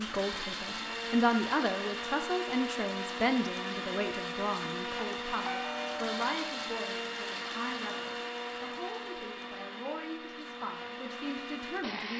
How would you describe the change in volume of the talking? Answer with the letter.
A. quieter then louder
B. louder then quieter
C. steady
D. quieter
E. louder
D.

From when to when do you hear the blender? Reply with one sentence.
You can hear the blender from 0.0 to 12.1 s.